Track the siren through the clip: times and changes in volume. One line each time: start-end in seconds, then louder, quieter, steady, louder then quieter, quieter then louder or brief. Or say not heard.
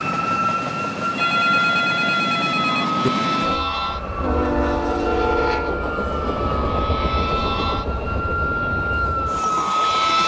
0.0-10.2 quieter then louder.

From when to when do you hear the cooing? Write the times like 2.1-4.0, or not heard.
not heard.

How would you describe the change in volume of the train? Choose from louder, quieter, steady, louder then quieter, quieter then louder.
louder then quieter.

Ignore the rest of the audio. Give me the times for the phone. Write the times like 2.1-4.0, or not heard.
1.1-3.1.